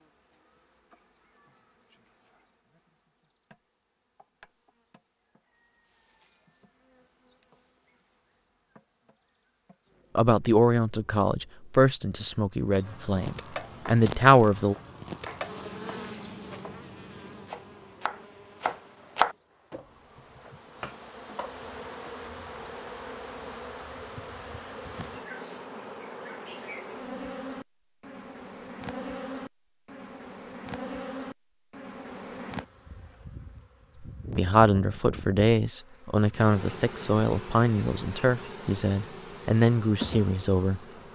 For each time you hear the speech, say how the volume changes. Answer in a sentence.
You can hear the speech from 10.2 to 14.8 s, getting quieter then louder; and from 34.3 to 40.8 s, at a steady volume.